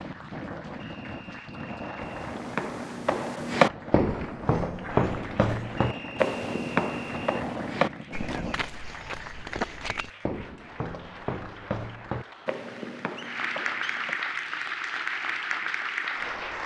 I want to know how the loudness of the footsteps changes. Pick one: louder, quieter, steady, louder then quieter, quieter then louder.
quieter.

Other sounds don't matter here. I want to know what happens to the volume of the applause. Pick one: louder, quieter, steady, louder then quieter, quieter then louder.
louder.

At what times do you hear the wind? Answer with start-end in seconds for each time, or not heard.
0.0-8.7.